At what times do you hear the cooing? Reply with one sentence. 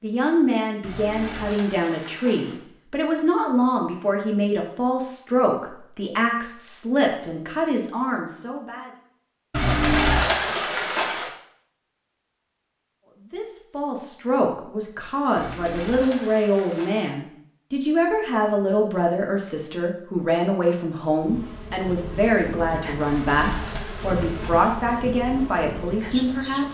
The cooing can be heard from 0.8 to 2.6 s, from 9.5 to 11.3 s, from 15.3 to 17.1 s and from 23.0 to 24.8 s.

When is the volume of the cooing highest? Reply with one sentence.
The loudest moment of the cooing is at 10 seconds.